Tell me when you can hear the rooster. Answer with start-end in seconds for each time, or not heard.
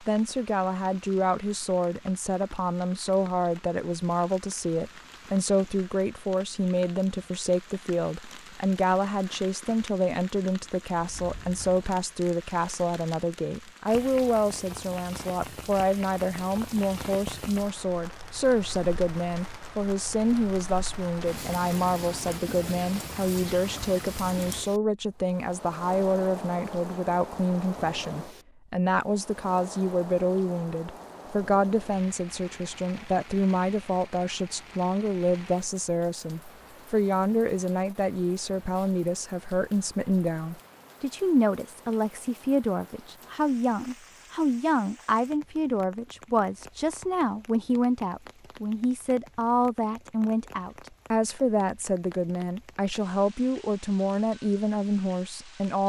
not heard.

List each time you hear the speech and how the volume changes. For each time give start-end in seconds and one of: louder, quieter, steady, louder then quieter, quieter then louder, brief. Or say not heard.
0.0-55.8 steady.